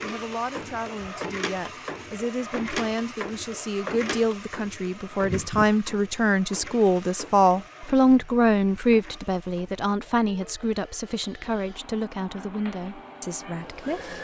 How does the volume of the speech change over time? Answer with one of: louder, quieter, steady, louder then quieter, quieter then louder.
louder then quieter.